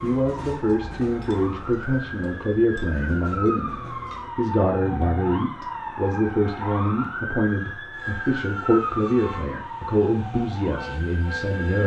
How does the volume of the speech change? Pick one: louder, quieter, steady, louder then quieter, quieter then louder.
steady.